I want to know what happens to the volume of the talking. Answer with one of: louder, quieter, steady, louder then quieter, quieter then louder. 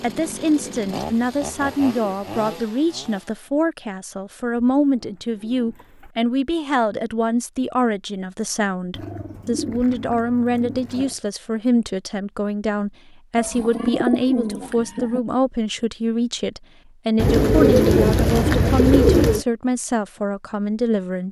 steady.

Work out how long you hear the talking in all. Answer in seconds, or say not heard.
21 s.